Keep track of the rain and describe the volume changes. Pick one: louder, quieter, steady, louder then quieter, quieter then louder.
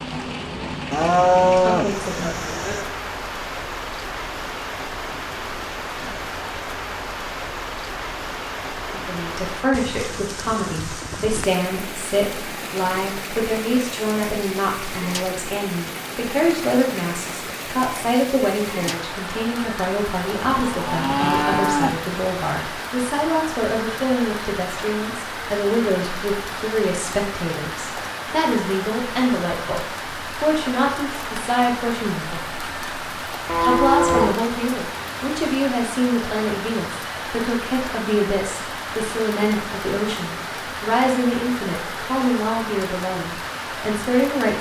steady.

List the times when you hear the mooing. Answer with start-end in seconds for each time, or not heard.
0.9-2.9, 20.4-21.9, 33.5-34.4.